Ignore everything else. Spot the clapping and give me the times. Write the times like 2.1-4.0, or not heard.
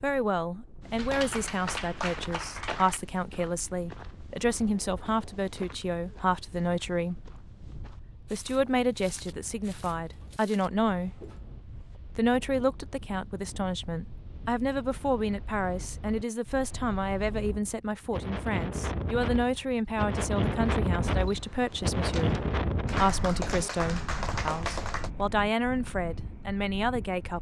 0.9-3.0, 22.9-25.1.